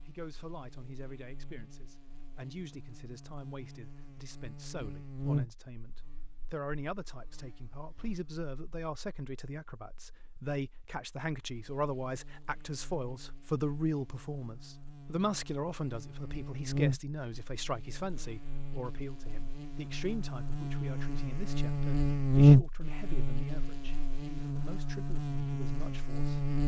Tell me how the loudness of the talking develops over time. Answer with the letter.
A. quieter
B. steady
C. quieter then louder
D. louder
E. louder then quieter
E.